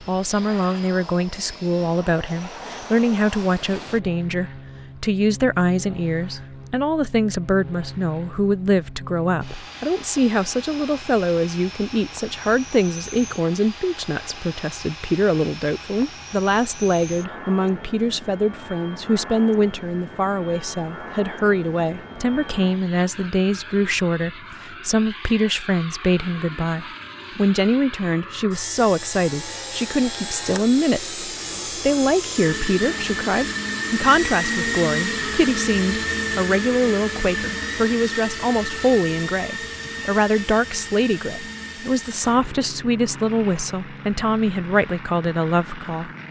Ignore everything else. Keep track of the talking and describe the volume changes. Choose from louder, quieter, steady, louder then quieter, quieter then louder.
steady.